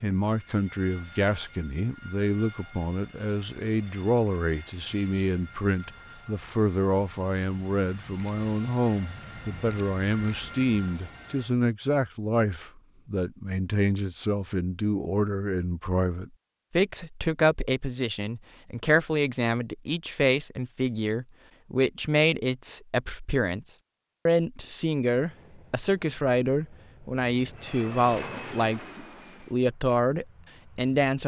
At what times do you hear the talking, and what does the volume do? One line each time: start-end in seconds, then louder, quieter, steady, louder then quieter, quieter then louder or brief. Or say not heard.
0.0-31.2 steady.